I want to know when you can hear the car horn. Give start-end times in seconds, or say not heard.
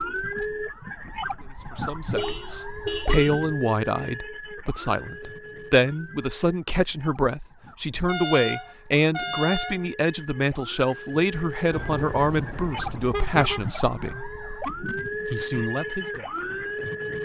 2.1-3.5, 8.1-9.8, 11.7-13.7.